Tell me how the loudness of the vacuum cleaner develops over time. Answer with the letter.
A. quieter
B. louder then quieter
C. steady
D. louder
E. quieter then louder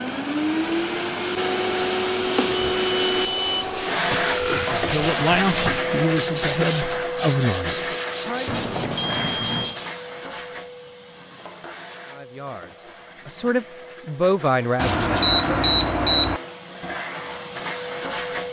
E.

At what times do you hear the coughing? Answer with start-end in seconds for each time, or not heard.
not heard.